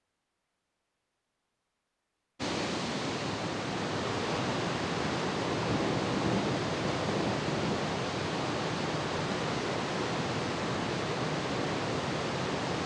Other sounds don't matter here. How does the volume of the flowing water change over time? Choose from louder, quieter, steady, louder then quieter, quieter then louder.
steady.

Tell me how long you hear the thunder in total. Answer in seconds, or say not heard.
3 s.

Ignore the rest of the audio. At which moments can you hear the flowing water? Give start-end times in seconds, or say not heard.
2.4-12.8.